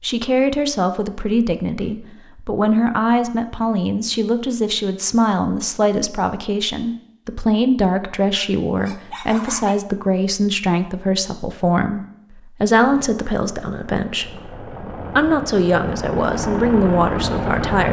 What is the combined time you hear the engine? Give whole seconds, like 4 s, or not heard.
5 s.